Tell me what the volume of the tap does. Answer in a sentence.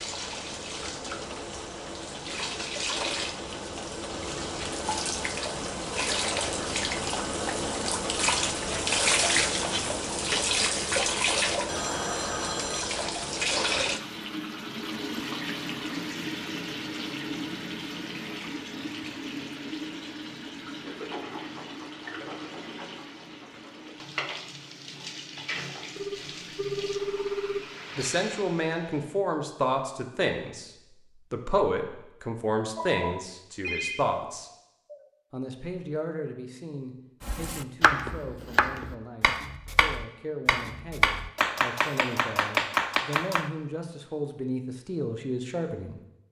The loudness of the tap goes up, then down.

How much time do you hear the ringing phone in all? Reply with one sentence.
The ringing phone can be heard for 5 seconds in total.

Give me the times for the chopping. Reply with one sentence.
The chopping can be heard from 37.2 to 43.5 s.